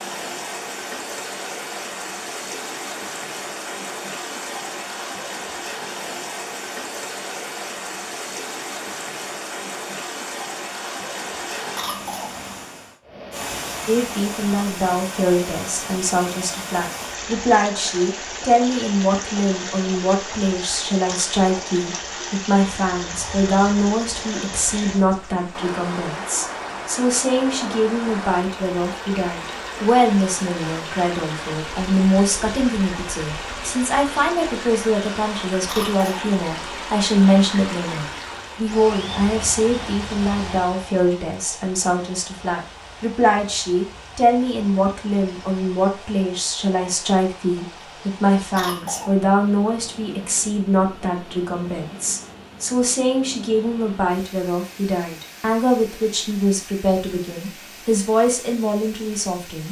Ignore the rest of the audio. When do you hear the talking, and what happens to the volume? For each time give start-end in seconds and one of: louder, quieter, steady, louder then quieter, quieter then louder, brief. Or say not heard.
13.8-59.6 steady.